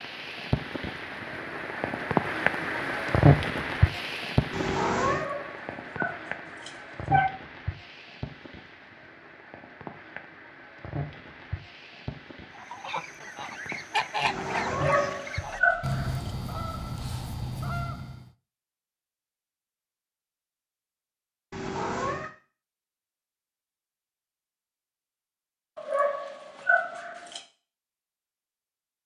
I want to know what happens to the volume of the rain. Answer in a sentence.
The loudness of the rain goes down.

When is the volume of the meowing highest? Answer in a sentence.
The volume of the meowing peaks at 5 seconds.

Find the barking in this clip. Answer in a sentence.
The barking can be heard from 5.2 to 7.3 s, from 14.7 to 16.3 s and from 25.8 to 27.4 s.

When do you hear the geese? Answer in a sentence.
You can hear the geese from 12.5 to 18.3 s.